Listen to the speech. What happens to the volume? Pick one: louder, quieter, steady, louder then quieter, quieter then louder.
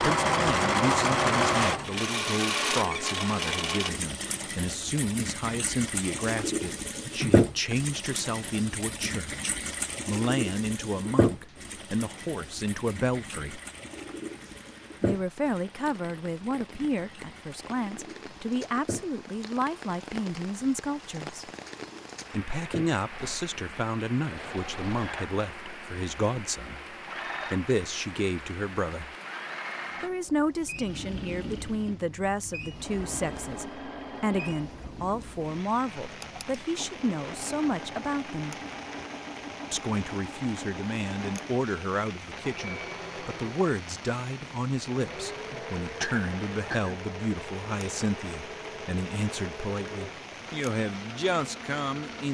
steady.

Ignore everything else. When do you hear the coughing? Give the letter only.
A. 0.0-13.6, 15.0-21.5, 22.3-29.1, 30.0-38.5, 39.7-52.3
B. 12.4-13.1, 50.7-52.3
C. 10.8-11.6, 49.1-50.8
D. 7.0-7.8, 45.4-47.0
D.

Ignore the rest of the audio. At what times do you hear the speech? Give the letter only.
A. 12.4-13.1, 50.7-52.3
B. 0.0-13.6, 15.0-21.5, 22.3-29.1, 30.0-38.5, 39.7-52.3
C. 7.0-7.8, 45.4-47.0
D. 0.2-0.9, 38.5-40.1
B.